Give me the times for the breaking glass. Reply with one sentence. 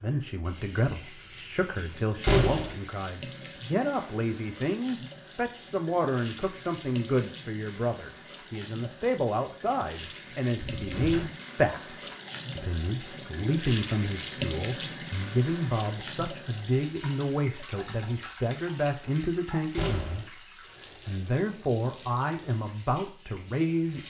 You can't hear the breaking glass here.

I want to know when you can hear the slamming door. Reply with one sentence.
The slamming door can be heard from 2.2 to 2.8 s, from 10.8 to 11.3 s and from 19.7 to 20.3 s.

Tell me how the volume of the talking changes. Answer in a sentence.
The loudness of the talking stays about the same.